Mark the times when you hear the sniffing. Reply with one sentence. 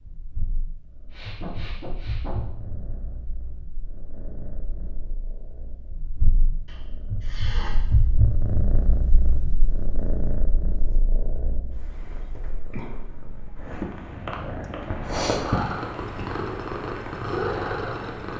You can hear the sniffing from 1.1 to 2.4 s, from 6.7 to 7.8 s and from 14.6 to 15.4 s.